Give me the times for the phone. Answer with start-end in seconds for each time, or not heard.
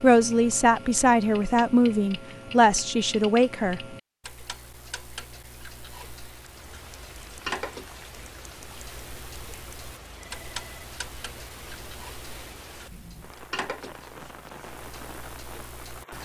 10.2-10.9.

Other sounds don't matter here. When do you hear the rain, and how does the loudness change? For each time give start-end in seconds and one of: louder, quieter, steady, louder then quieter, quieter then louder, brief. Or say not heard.
6.2-16.2 steady.